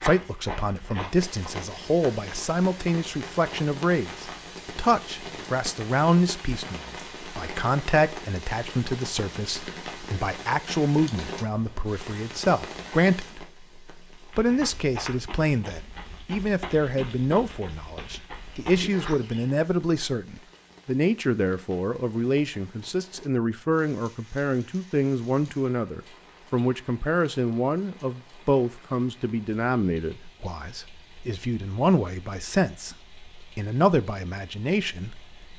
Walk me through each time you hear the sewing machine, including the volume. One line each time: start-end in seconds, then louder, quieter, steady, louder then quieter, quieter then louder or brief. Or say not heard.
not heard.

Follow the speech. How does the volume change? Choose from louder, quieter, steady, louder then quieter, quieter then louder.
steady.